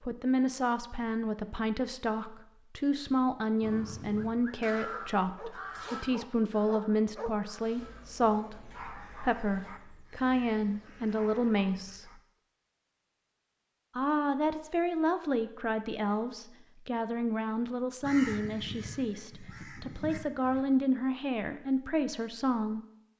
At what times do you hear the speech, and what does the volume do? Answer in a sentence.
The speech can be heard from 0.0 to 12.1 s, at a steady volume; and from 13.9 to 22.9 s, at a steady volume.